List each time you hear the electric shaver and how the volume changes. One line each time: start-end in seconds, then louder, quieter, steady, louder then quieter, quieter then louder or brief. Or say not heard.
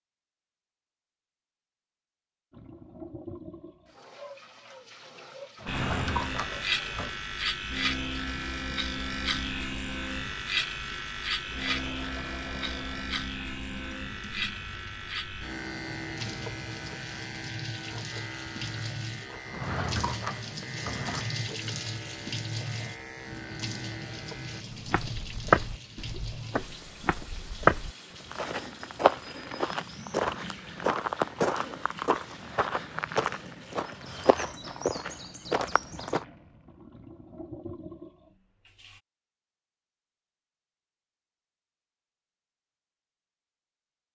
5.7-24.6 quieter.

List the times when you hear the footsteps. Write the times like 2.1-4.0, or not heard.
24.7-36.2.